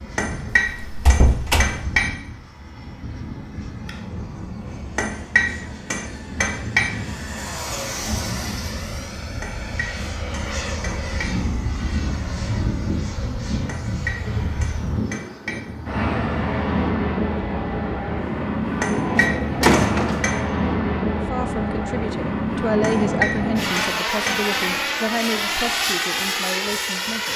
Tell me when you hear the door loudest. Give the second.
20 s.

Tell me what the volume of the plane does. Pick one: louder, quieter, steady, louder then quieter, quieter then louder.
louder.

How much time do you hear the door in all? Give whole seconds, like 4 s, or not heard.
2 s.